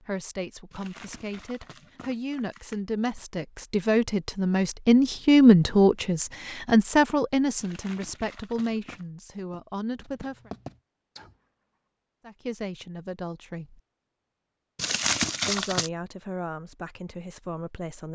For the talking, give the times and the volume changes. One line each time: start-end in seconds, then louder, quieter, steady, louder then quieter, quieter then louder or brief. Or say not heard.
0.0-10.5 louder then quieter
12.2-13.8 brief
15.4-18.0 brief.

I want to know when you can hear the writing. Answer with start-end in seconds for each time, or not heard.
9.3-11.4.